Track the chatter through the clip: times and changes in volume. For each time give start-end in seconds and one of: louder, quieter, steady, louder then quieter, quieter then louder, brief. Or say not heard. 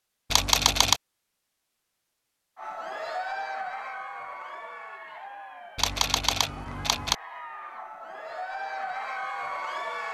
2.5-10.0 quieter then louder.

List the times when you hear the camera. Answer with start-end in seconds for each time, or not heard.
0.3-1.0, 5.8-7.2.